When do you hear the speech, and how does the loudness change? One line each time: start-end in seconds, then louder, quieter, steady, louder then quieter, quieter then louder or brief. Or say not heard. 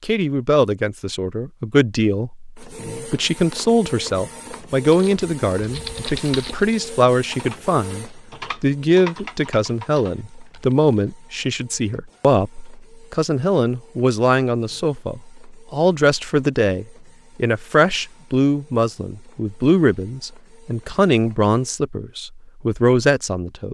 0.0-23.6 steady.